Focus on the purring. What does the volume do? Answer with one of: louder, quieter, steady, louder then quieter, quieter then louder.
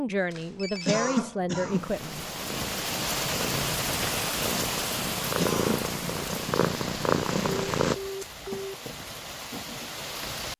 louder.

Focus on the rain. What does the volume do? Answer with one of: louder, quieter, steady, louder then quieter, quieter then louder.
quieter.